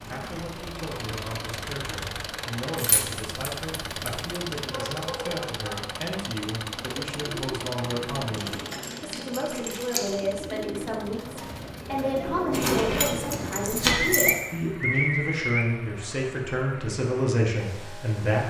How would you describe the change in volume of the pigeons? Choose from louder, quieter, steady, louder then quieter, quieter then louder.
louder.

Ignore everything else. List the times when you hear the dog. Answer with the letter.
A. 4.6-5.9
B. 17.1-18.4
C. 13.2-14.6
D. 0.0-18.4
A.